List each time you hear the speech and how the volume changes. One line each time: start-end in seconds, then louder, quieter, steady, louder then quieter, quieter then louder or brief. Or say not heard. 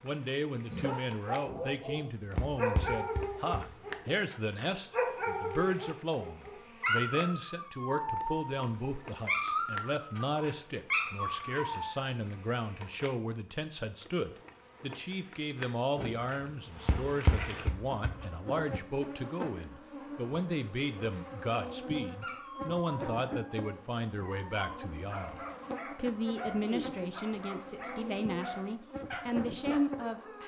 0.0-30.4 steady.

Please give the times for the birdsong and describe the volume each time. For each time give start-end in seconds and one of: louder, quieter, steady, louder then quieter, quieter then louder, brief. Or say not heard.
not heard.